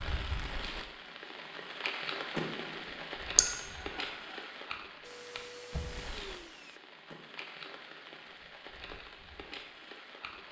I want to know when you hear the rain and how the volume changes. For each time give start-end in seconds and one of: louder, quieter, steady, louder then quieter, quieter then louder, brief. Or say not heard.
0.0-10.4 quieter.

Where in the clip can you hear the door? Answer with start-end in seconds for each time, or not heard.
2.3-3.1, 7.0-7.7.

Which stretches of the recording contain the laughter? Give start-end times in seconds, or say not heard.
3.4-4.5.